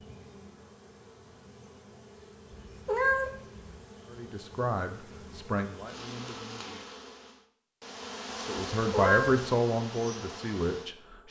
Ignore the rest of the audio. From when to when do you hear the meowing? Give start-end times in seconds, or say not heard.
2.5-3.8, 8.8-9.5.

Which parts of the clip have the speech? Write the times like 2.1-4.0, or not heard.
4.0-6.8, 8.4-11.2.